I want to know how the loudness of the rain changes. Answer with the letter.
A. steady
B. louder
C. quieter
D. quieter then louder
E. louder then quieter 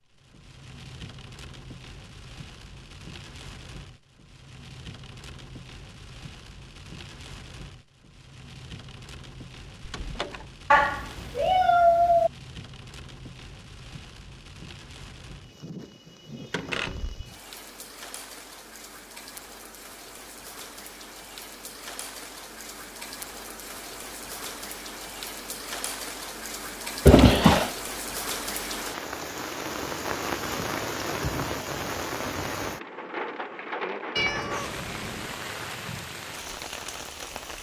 B.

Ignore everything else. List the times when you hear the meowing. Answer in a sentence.
The meowing can be heard from 10.7 to 12.3 s and from 34.1 to 35.4 s.